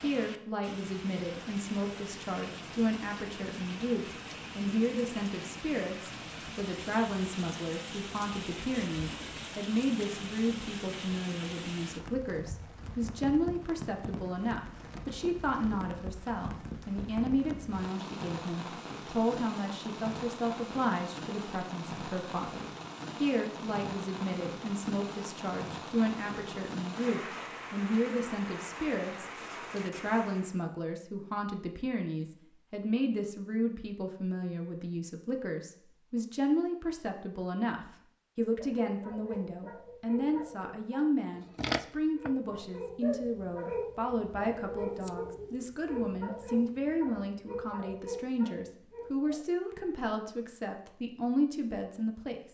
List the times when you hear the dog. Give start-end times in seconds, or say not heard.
38.5-49.5.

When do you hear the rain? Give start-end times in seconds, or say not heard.
0.0-30.6.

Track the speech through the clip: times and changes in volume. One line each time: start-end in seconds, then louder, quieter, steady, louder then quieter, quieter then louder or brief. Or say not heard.
0.0-52.5 steady.